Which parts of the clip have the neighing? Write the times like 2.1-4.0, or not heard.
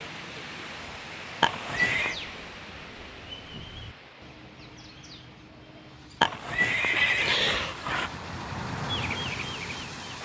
1.4-2.1, 6.2-8.2.